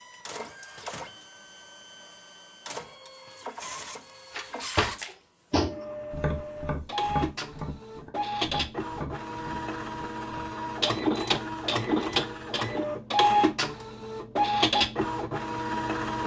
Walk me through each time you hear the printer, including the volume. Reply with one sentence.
You can hear the printer from 0.0 to 16.2 s, getting louder.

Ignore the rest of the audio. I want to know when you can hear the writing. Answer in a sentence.
You can't hear the writing here.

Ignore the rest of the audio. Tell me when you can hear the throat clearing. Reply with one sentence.
You can't hear the throat clearing here.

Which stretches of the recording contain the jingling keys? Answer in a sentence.
The jingling keys can be heard from 4.3 to 5.0 s.